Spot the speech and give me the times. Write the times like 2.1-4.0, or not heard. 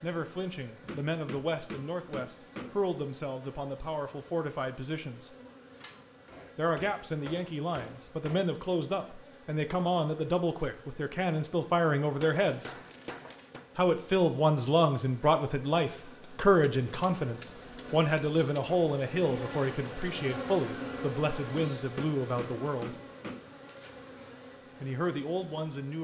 0.0-5.3, 6.5-12.8, 13.8-22.9, 24.8-26.0.